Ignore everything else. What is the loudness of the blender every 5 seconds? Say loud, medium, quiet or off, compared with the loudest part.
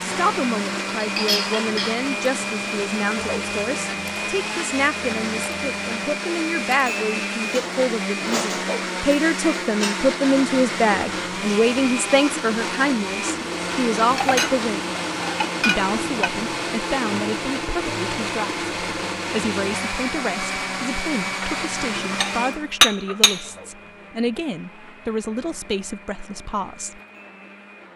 loud, loud, loud, loud, loud, quiet.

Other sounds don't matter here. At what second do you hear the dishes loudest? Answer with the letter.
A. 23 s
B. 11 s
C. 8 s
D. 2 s
A.